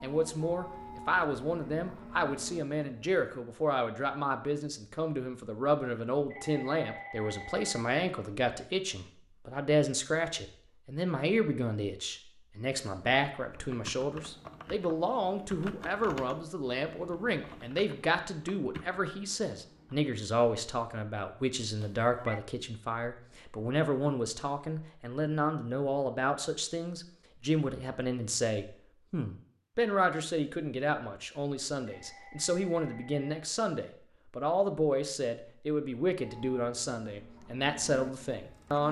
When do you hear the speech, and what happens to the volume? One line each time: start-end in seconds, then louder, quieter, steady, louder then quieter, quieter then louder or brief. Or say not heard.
0.0-38.8 steady.